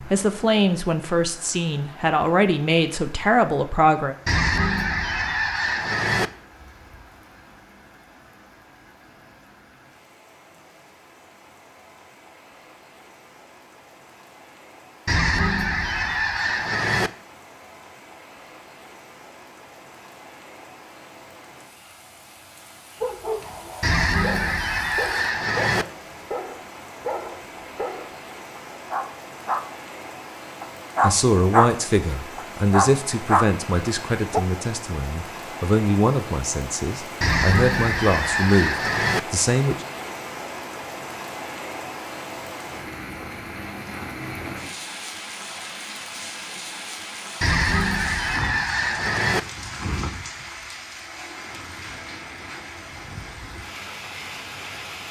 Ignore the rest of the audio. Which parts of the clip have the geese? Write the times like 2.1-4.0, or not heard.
4.2-6.3, 15.1-17.1, 23.8-25.9, 37.2-39.2, 47.4-49.4.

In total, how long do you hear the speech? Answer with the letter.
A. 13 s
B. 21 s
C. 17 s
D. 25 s
A.